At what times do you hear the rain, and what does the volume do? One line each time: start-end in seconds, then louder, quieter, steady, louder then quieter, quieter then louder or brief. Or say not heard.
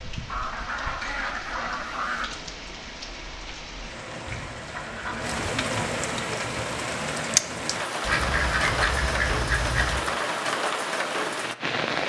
0.0-12.0 louder.